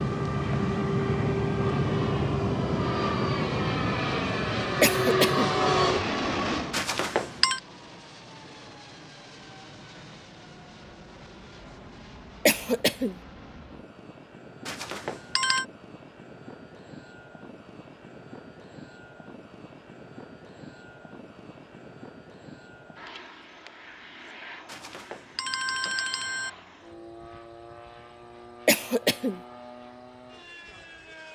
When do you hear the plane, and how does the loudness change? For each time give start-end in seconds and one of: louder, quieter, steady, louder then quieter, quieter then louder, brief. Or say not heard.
0.0-31.3 quieter.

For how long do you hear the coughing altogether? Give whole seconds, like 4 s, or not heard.
2 s.